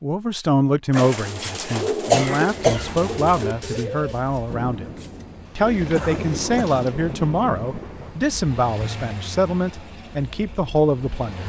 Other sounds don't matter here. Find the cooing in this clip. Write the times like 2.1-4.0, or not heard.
0.9-6.9.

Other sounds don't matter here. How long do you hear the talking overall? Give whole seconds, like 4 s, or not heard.
11 s.